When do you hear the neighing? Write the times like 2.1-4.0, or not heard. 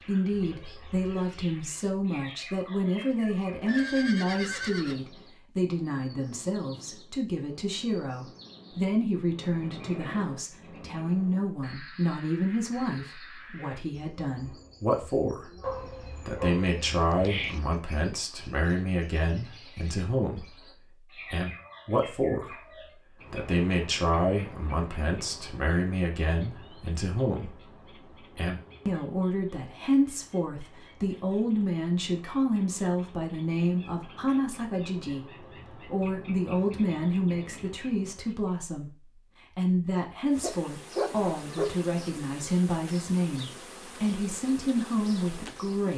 3.6-5.1.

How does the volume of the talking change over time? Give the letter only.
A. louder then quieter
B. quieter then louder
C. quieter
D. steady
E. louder
D.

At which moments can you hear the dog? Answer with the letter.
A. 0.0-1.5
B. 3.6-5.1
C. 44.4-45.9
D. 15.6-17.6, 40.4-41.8
D.